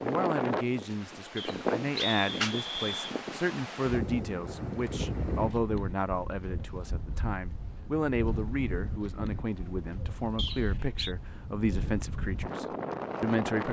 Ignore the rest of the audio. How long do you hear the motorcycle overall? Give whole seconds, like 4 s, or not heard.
not heard.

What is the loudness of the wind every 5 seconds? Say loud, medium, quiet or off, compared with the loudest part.
loud, medium, loud.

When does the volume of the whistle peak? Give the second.
2 s.